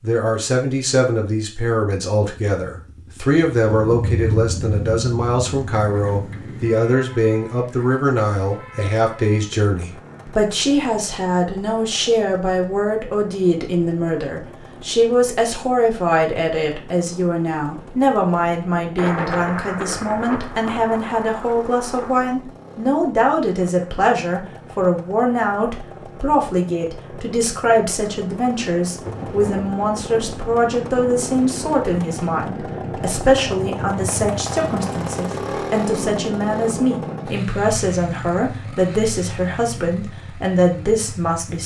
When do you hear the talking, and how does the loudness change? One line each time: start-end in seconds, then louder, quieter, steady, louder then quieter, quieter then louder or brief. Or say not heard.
0.0-41.6 steady.